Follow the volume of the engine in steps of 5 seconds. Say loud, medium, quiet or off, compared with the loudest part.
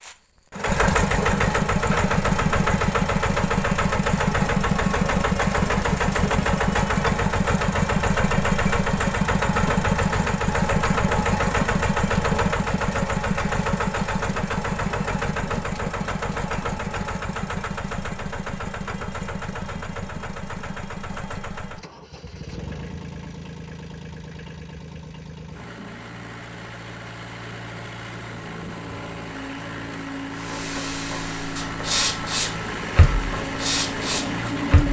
loud, loud, loud, medium, quiet, quiet, medium.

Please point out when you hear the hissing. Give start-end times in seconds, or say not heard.
30.4-34.8.